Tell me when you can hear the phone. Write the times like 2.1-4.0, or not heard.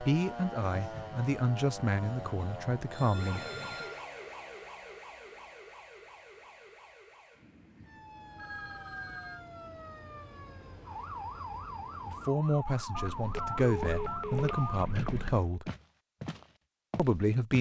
2.9-4.0, 8.3-9.4, 12.9-15.6.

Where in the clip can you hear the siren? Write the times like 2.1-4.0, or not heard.
0.0-15.4.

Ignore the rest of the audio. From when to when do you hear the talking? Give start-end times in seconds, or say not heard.
0.0-3.4, 12.1-15.7, 16.9-17.5.